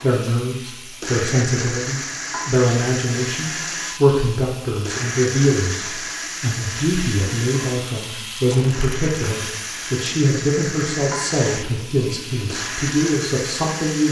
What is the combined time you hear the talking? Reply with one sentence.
You can hear the talking for 14 seconds altogether.